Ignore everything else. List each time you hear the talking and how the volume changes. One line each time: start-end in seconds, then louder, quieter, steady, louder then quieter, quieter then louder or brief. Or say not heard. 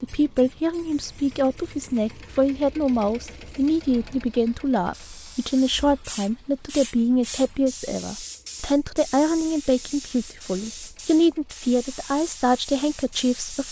0.0-13.6 steady.